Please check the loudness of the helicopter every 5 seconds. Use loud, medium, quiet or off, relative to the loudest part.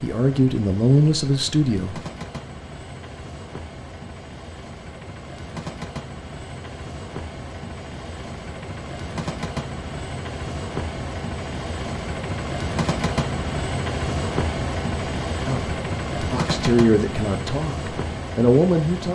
medium, medium, loud, loud.